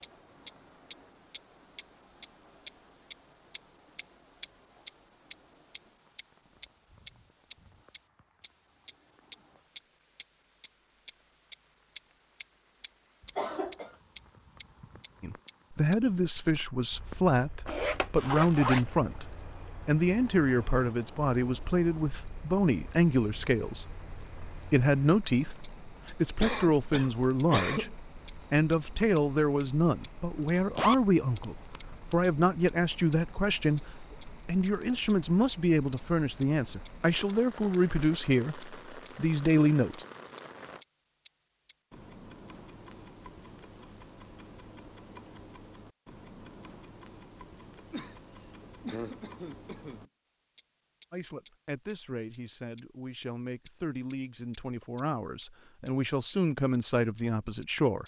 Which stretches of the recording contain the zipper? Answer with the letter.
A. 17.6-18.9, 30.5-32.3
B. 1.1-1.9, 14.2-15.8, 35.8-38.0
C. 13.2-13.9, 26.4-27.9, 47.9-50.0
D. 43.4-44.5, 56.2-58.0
A.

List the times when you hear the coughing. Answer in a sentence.
You can hear the coughing from 13.2 to 13.9 s, from 26.4 to 27.9 s and from 47.9 to 50.0 s.